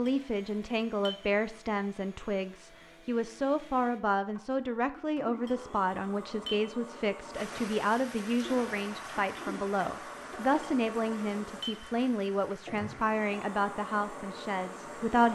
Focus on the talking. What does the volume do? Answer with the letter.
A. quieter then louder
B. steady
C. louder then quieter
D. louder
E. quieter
B.